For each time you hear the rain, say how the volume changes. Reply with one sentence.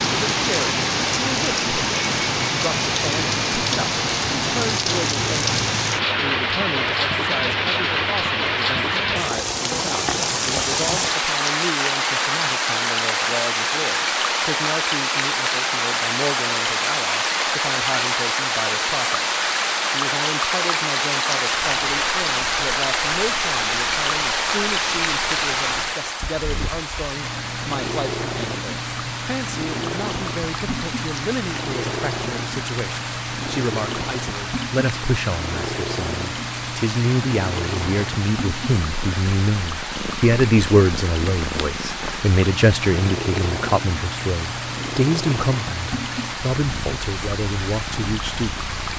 You can hear the rain from 0.0 to 48.9 s, getting quieter.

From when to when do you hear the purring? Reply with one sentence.
The purring can be heard from 21.5 to 48.9 s.